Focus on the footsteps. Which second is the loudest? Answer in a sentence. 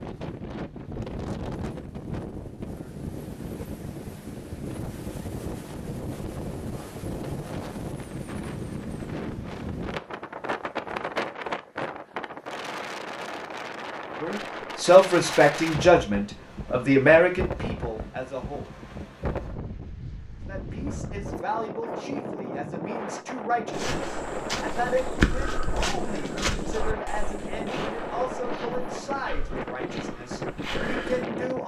The volume of the footsteps peaks at 25 seconds.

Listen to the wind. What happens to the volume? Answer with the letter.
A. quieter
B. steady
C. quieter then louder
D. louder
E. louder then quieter
B.